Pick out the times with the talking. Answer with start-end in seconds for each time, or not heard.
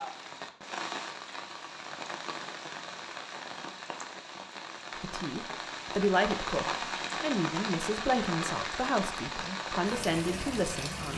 5.0-11.1.